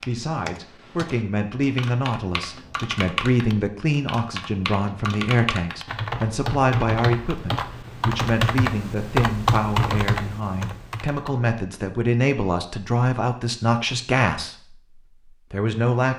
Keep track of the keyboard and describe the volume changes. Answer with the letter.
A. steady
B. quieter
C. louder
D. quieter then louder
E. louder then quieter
C.